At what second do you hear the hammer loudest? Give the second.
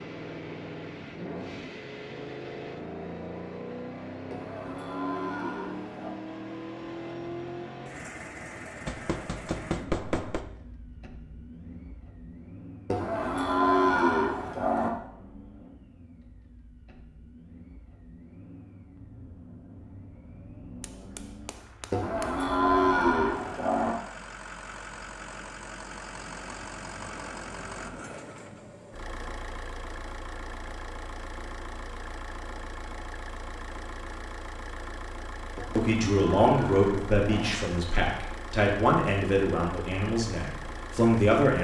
10 s.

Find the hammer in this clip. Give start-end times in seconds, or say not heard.
8.8-10.4, 20.8-22.4.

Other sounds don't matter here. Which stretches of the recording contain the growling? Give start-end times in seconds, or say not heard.
not heard.